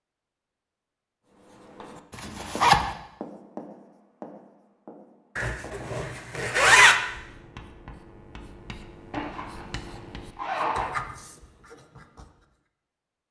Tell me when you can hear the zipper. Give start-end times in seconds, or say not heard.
2.1-2.9, 5.3-7.0, 9.1-10.9.